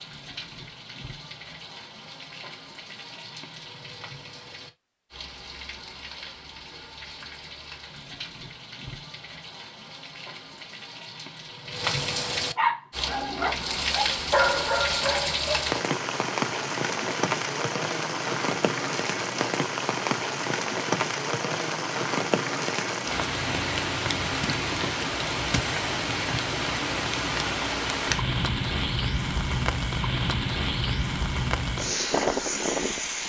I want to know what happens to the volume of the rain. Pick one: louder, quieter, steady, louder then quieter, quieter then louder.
louder.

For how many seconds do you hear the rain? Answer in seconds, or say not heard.
33 s.